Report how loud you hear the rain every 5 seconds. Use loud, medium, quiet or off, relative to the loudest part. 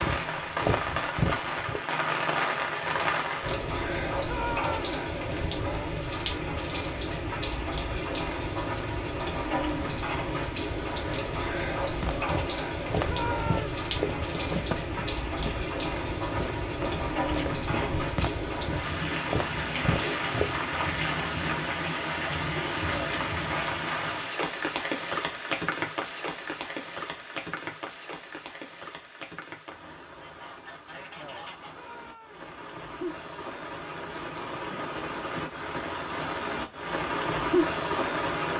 loud, loud, loud, loud, loud, medium, medium, loud.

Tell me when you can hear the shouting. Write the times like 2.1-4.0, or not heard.
4.2-4.9, 13.1-13.8, 31.7-32.5.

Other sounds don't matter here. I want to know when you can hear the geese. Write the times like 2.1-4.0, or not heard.
30.1-31.8.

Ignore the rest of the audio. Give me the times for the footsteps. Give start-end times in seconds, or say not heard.
0.0-1.8, 12.0-20.4.